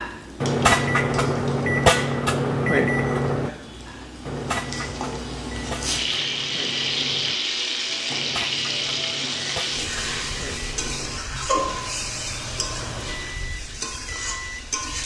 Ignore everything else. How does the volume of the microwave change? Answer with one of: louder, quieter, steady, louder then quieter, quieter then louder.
quieter.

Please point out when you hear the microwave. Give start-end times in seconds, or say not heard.
0.0-15.0.